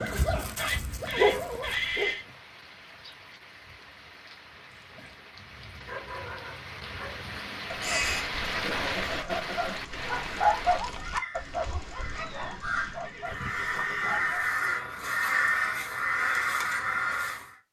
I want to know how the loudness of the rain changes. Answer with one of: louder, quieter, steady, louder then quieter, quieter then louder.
louder.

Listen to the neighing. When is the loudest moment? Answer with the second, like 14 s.
2 s.